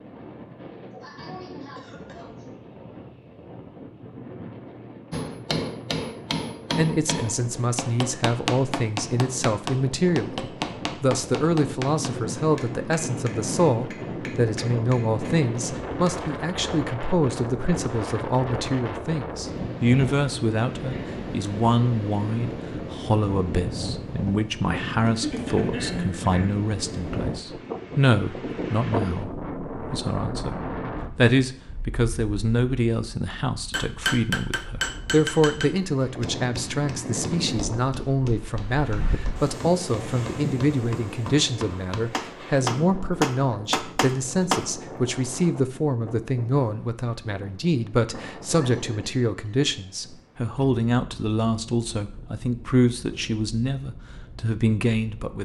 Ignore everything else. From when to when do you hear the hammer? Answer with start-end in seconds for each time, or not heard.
5.1-16.4, 33.7-44.8.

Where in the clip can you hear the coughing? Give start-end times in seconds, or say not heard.
0.9-2.5, 25.0-26.6, 48.5-49.5.